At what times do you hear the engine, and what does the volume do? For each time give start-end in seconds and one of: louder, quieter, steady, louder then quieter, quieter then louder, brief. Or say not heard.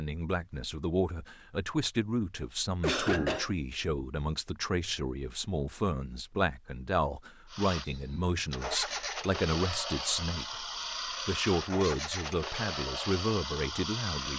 7.5-14.3 steady.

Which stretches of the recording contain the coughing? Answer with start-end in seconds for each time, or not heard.
2.4-3.5.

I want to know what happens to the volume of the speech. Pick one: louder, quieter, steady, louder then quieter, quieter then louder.
steady.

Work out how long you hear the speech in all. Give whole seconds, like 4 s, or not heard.
14 s.